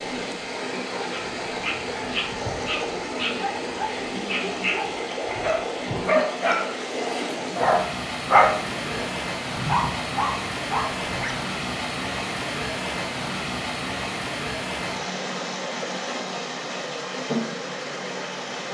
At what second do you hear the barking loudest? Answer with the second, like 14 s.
8 s.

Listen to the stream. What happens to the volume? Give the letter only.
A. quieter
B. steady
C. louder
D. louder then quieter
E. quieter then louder
B.